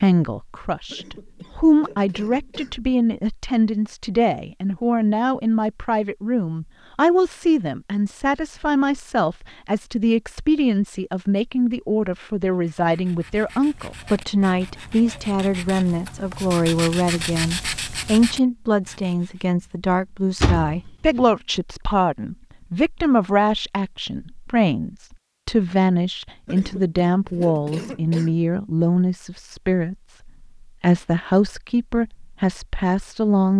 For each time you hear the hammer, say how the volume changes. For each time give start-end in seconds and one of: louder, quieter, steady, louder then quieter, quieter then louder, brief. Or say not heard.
not heard.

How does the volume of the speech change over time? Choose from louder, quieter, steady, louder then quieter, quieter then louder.
steady.